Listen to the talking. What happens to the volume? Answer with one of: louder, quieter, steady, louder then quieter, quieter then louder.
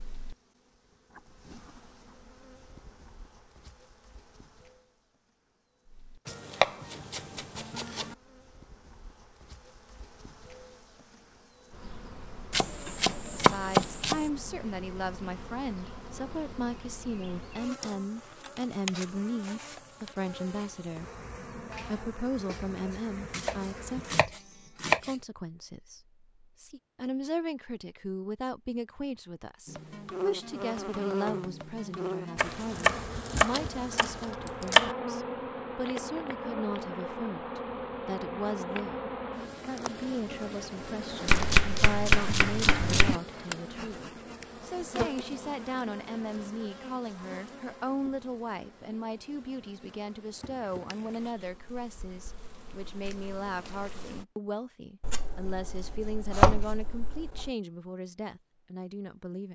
steady.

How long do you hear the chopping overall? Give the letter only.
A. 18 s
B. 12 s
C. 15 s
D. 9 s
B.